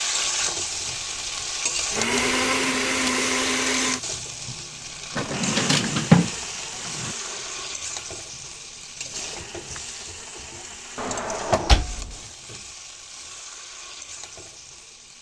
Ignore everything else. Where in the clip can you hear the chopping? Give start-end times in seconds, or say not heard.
not heard.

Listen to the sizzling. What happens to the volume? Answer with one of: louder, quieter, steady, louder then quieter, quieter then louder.
quieter.